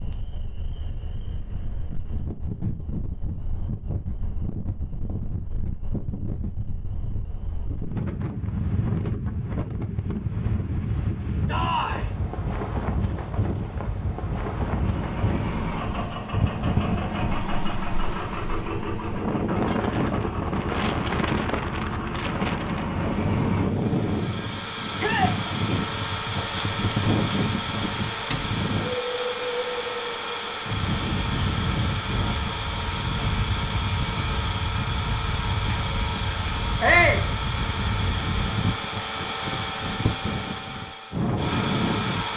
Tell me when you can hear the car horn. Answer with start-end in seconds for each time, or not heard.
not heard.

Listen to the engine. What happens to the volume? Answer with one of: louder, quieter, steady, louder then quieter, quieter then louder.
steady.